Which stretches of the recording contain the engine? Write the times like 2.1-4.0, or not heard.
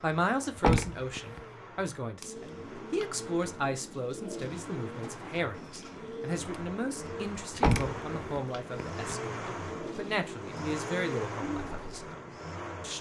0.0-12.9.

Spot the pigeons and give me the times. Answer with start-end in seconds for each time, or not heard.
2.2-12.2.